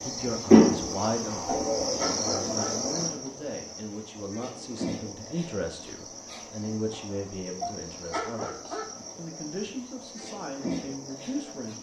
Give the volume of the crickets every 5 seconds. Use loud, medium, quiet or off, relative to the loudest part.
loud, quiet, quiet.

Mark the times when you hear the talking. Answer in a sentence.
You can hear the talking from 0.1 to 11.7 s.